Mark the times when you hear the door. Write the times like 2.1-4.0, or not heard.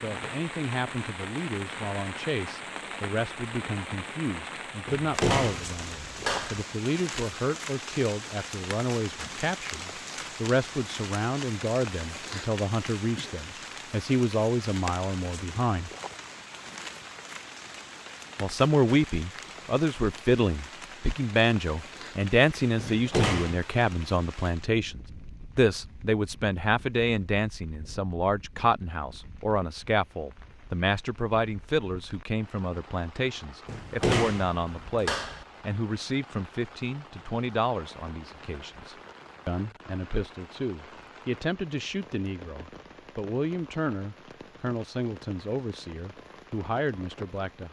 4.8-6.7, 22.8-23.6, 33.6-35.5.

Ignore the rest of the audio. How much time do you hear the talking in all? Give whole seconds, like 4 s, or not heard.
45 s.